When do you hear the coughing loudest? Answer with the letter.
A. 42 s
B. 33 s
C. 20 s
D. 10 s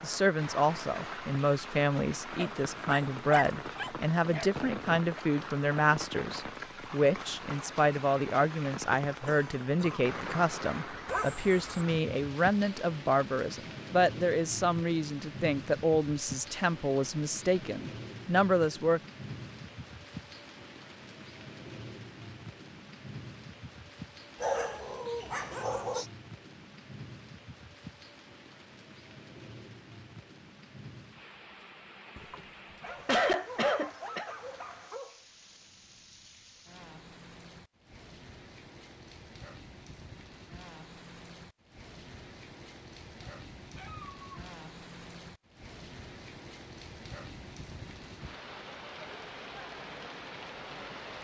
B.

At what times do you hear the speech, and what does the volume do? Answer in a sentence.
You can hear the speech from 0.0 to 19.0 s, at a steady volume.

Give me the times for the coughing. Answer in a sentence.
You can hear the coughing from 9.2 to 10.6 s and from 32.1 to 34.4 s.